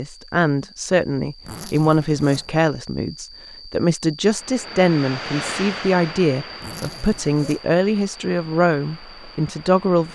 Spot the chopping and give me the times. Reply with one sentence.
You can't hear the chopping here.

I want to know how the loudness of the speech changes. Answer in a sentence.
The loudness of the speech stays about the same.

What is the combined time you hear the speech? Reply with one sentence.
The speech can be heard for 10 seconds in total.